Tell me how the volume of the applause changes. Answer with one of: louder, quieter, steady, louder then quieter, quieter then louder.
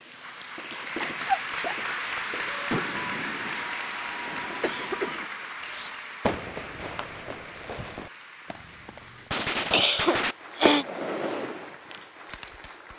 quieter.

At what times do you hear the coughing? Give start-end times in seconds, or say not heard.
1.0-1.9, 4.6-5.3, 9.5-10.8.